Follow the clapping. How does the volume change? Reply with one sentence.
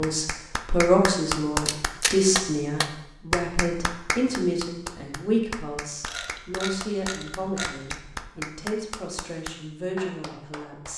The volume of the clapping goes down.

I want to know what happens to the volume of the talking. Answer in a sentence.
The volume of the talking goes down.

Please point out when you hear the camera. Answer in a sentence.
You can hear the camera from 1.6 to 2.1 s and from 6.0 to 8.3 s.